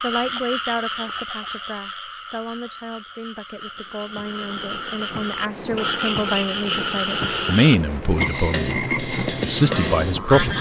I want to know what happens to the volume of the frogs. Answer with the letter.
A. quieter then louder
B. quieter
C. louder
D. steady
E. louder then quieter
A.